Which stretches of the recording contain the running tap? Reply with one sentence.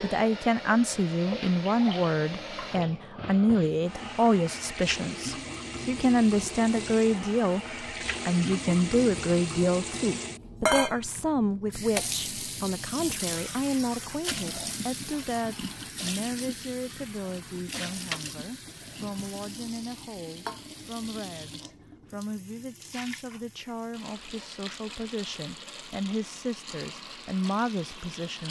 The running tap can be heard from 0.0 to 28.4 s.